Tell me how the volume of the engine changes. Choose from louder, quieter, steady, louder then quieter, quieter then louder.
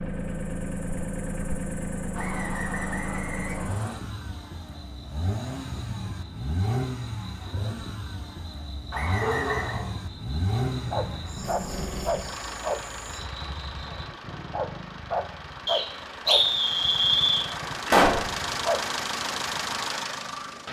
quieter then louder.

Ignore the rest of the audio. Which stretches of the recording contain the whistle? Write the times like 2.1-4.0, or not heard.
2.1-4.0, 8.9-9.8, 15.7-17.4.